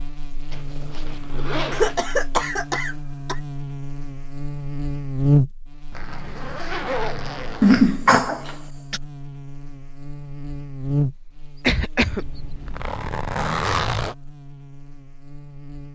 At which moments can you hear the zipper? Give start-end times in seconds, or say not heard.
0.5-2.1, 5.9-7.8, 12.1-14.2.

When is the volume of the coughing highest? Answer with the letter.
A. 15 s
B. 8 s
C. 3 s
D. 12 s
B.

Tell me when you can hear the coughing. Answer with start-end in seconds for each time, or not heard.
1.7-3.4, 7.6-9.0, 11.4-12.4.